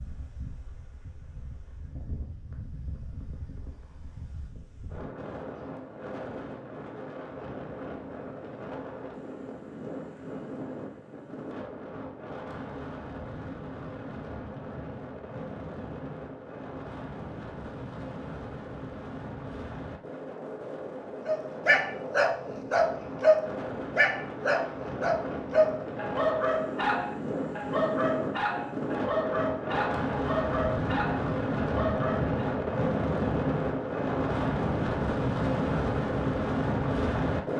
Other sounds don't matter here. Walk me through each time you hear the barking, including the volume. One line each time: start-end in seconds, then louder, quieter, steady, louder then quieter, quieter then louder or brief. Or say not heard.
21.2-32.5 quieter.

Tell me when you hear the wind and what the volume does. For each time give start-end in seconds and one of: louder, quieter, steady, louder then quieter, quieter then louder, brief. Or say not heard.
0.0-37.5 louder.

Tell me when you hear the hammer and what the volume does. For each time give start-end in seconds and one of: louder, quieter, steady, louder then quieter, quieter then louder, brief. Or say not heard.
not heard.